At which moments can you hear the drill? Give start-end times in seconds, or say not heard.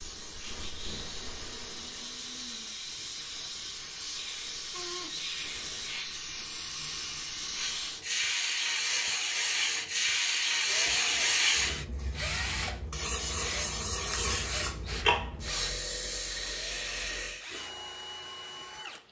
10.7-19.0.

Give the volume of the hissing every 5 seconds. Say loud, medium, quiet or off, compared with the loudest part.
medium, loud, loud, loud.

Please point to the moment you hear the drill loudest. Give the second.
12 s.